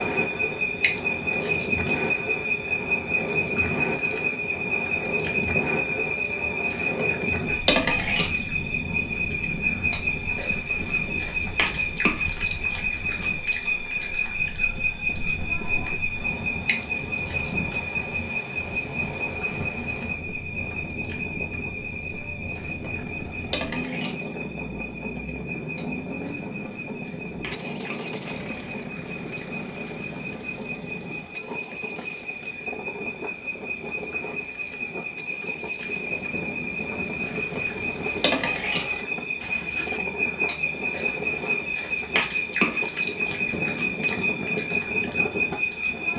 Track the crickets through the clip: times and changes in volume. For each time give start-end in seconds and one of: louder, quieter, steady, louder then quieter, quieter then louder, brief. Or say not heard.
0.0-46.1 quieter then louder.